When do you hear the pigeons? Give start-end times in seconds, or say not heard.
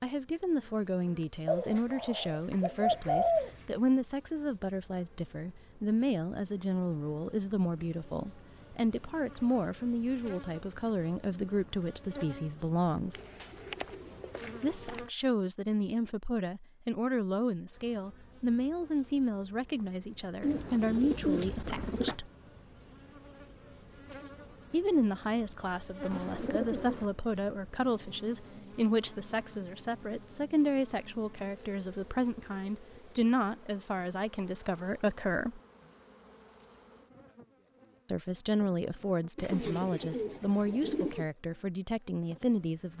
1.4-3.6, 13.2-15.0, 20.4-22.1, 26.1-27.1, 39.4-41.2.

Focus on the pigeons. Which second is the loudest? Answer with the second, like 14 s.
3 s.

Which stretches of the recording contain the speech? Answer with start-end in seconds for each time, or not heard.
0.0-13.2, 14.6-22.3, 24.7-35.6, 38.1-42.9.